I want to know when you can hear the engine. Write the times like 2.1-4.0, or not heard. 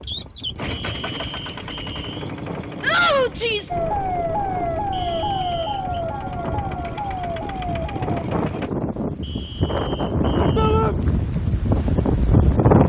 0.0-8.7.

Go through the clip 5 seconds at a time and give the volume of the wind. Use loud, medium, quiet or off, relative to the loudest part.
quiet, medium, loud.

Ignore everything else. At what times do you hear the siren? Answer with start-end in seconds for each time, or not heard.
3.7-8.1.